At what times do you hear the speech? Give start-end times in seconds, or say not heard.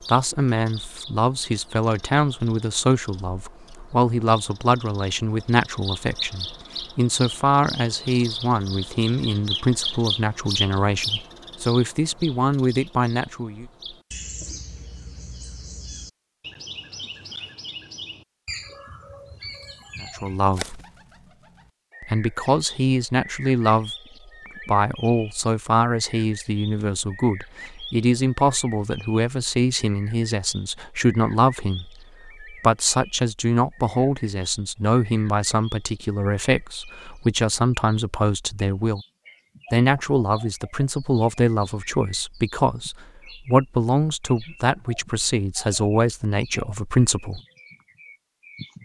0.1-13.7, 20.0-20.8, 22.0-23.9, 24.6-39.0, 39.7-47.4.